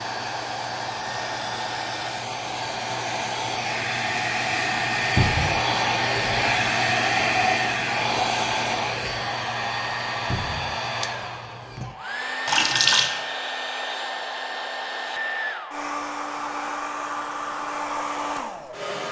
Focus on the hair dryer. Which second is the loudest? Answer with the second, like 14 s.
7 s.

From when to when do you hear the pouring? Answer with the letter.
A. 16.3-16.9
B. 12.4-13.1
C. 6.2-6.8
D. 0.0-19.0
B.